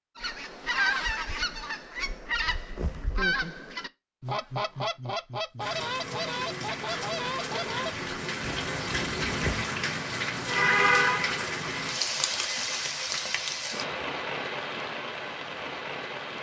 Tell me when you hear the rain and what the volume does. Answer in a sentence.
The rain can be heard from 5.6 to 16.3 s, getting louder then quieter.